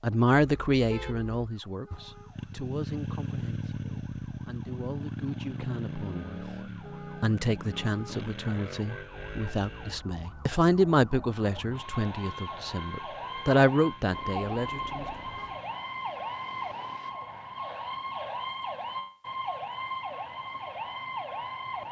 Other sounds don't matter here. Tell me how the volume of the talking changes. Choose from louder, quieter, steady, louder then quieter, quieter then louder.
quieter then louder.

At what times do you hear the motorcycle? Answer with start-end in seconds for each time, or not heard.
1.9-10.0, 11.8-17.1.